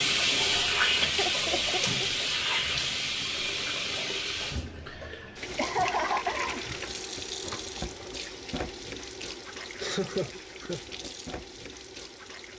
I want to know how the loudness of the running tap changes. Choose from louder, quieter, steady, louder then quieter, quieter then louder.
quieter.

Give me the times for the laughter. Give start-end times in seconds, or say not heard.
0.6-1.9, 5.5-6.6, 9.2-10.8.